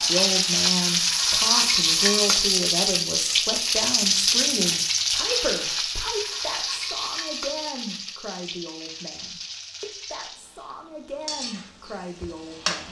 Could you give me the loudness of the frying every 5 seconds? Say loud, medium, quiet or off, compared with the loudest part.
loud, medium, quiet.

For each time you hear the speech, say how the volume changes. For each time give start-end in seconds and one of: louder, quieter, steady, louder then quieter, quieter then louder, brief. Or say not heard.
0.0-12.8 quieter.